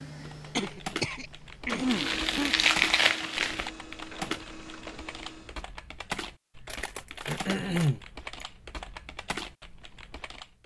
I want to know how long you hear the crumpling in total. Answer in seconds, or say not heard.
3 s.